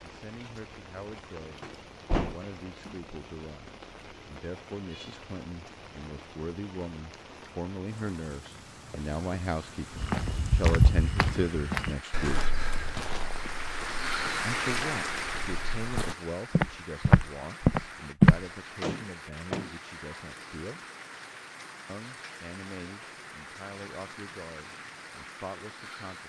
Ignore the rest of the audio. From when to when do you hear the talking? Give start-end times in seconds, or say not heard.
0.0-12.6, 14.4-20.9, 21.9-26.2.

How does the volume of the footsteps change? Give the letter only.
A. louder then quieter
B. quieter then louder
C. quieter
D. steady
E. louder
B.